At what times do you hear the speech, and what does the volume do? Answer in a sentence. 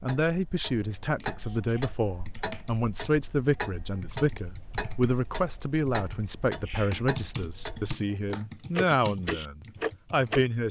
The speech can be heard from 0.0 to 10.6 s, at a steady volume.